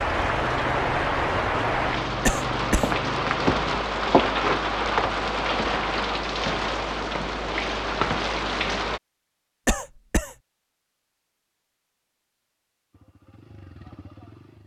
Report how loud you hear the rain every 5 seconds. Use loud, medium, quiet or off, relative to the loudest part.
loud, loud, off.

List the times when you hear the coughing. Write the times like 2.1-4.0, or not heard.
2.2-2.9, 9.7-10.3.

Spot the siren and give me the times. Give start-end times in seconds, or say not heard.
not heard.